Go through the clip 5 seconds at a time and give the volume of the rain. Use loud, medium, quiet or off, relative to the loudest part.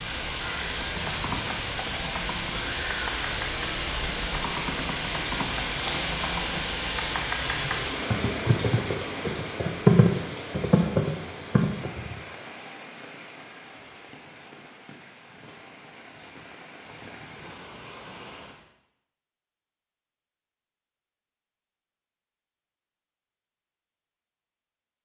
loud, loud, medium, quiet, off.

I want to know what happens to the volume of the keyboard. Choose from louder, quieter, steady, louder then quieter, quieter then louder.
louder.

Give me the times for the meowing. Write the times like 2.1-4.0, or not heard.
not heard.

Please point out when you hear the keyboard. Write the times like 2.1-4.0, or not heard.
0.6-12.2.